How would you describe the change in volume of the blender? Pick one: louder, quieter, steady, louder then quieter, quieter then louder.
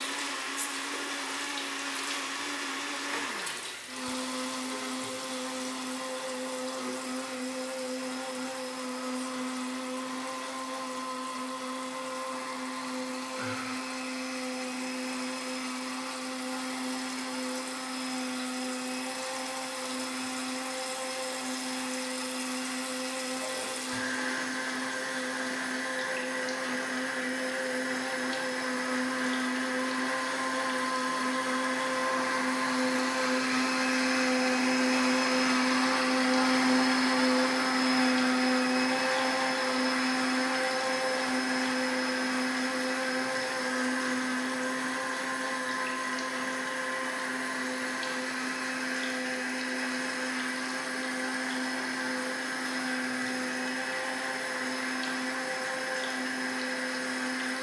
louder then quieter.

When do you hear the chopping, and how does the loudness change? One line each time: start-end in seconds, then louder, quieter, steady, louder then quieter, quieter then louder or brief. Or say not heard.
not heard.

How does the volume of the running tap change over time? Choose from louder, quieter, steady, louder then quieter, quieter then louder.
louder.